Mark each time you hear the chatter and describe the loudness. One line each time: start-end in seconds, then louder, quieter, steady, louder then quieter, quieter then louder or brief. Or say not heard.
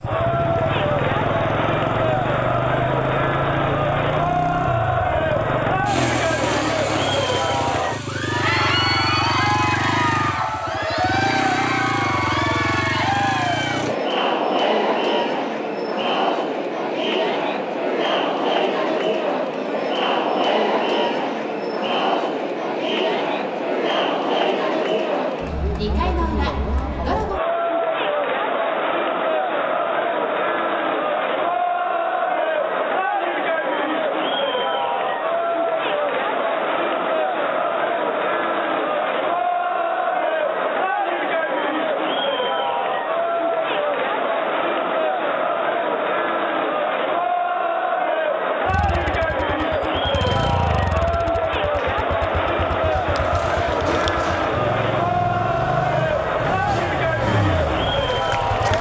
0.0-58.7 steady.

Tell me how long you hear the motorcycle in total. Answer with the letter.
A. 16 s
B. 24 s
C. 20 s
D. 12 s
B.